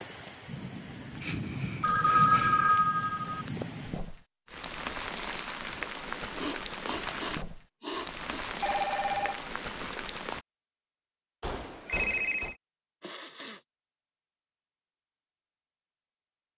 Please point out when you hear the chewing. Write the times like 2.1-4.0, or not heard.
not heard.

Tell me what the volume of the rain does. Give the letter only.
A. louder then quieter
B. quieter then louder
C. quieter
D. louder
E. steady
E.